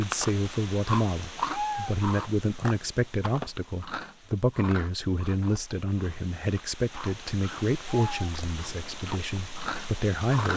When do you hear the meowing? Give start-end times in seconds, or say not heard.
1.4-1.9, 7.8-8.3.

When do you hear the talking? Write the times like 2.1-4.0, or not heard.
0.0-10.5.